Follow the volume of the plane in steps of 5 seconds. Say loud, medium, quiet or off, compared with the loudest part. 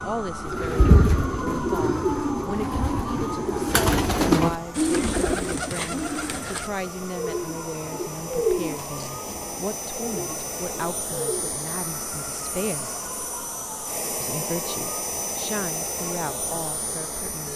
quiet, medium, loud, loud.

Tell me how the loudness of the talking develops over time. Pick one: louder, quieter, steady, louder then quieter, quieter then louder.
steady.